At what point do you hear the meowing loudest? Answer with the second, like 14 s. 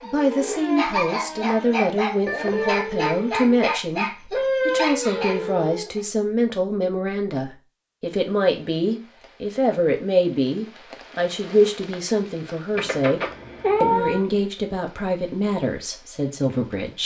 14 s.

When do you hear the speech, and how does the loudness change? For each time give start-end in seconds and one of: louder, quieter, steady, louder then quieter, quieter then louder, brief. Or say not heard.
0.0-17.0 steady.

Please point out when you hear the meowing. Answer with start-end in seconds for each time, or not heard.
2.2-2.9, 12.8-14.2.